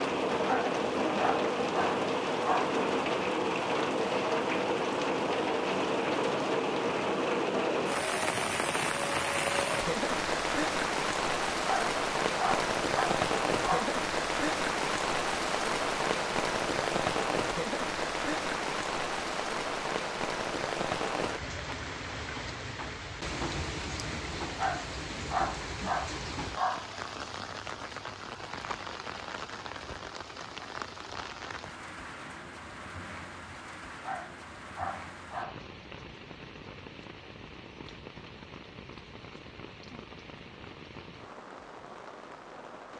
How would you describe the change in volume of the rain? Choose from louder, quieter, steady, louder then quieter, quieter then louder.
quieter.